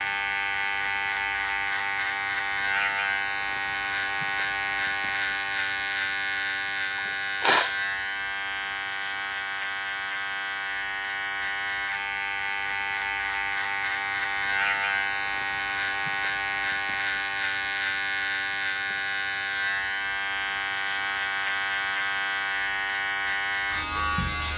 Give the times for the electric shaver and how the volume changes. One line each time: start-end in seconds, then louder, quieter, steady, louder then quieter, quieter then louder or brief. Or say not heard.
0.0-24.5 steady.